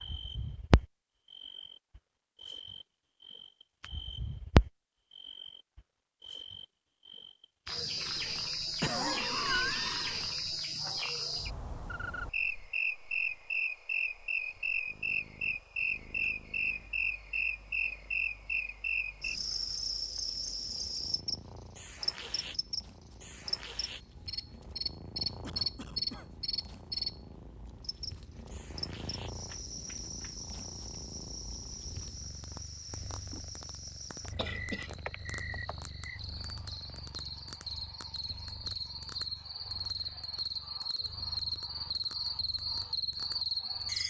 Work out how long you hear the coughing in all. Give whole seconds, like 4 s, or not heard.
3 s.